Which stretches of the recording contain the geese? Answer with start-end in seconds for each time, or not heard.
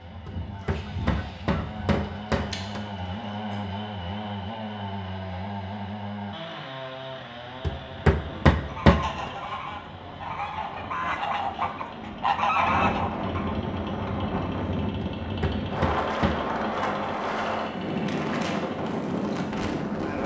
0.0-3.6, 8.6-13.6.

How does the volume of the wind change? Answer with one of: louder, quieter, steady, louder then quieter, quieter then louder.
louder.